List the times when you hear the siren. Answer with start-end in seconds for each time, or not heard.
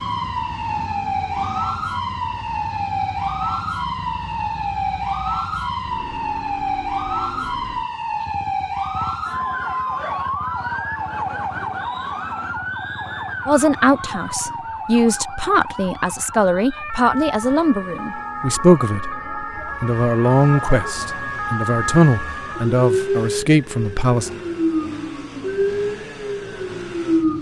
0.0-27.3.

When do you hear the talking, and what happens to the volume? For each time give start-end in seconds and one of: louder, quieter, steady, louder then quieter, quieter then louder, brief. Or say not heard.
13.4-24.3 steady.